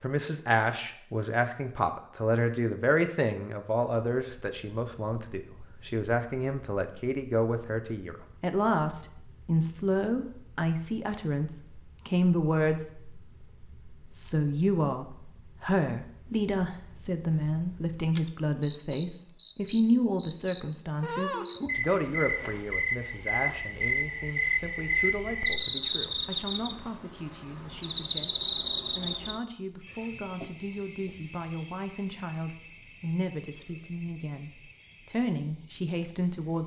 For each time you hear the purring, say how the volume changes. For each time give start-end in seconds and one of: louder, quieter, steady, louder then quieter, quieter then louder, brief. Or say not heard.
not heard.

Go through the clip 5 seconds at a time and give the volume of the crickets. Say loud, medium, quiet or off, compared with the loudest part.
quiet, quiet, quiet, quiet, loud, loud, medium, medium.